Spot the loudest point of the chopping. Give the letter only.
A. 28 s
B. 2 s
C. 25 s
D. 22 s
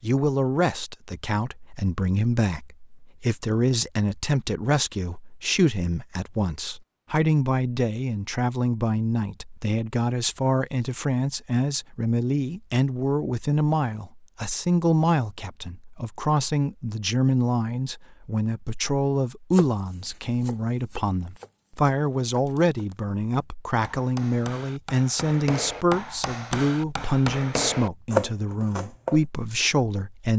A.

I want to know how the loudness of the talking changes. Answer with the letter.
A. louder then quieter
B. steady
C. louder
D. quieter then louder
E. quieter
B.